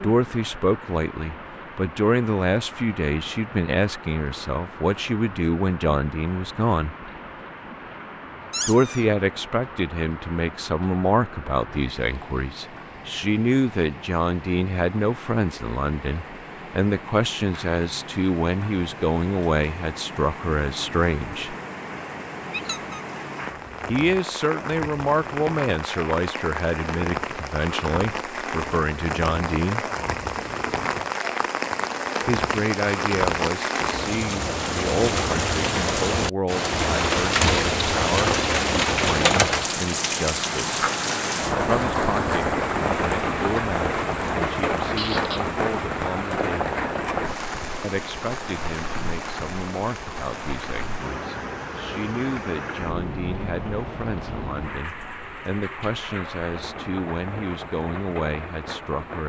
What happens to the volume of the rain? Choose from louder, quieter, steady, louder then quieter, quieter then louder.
louder then quieter.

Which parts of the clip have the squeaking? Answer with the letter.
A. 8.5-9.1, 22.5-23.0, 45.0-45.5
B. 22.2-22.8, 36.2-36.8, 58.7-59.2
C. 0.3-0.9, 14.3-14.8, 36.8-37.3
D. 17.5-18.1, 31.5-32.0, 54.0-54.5
A.